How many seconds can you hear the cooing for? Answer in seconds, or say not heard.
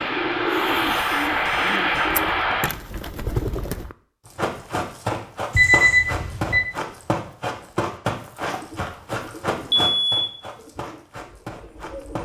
8 s.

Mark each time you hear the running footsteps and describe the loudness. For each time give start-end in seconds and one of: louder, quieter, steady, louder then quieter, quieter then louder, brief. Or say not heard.
4.2-12.2 quieter.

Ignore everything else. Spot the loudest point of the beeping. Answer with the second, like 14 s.
6 s.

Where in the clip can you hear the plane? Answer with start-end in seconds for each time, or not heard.
0.0-2.7.